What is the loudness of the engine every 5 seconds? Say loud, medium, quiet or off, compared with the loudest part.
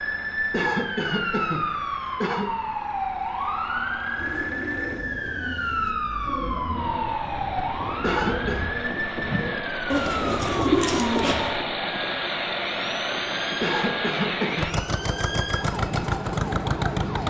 quiet, medium, loud, loud.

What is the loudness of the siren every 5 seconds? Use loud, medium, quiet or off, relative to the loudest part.
loud, loud, medium, loud.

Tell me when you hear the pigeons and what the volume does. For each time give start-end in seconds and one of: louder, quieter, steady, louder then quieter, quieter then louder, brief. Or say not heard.
4.2-11.5 louder.